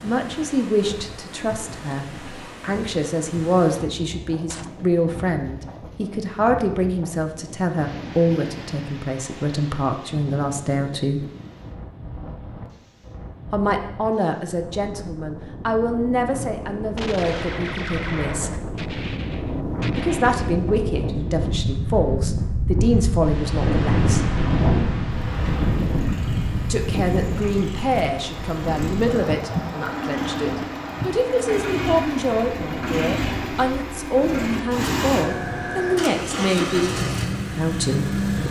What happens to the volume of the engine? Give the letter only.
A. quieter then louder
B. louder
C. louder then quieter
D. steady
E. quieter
B.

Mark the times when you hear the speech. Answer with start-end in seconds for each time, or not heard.
0.0-11.2, 13.5-18.6, 19.9-24.2, 26.7-37.0, 37.5-38.2.